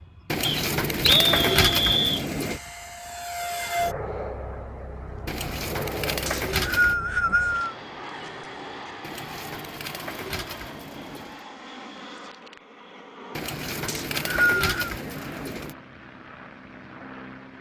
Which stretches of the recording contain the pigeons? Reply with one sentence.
You can hear the pigeons from 0.3 to 2.6 s, from 5.2 to 7.0 s, from 9.0 to 11.4 s and from 13.3 to 15.8 s.